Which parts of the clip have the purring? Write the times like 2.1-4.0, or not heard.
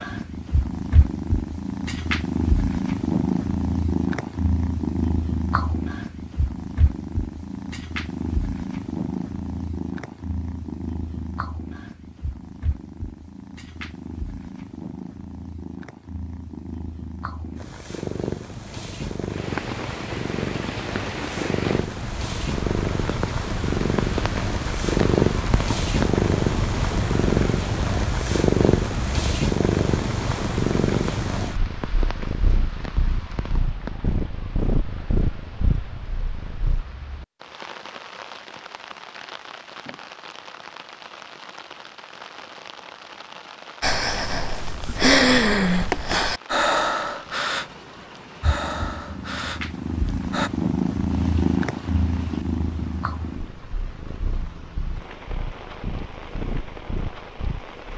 0.0-36.9, 48.4-57.8.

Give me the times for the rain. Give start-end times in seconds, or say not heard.
19.2-57.9.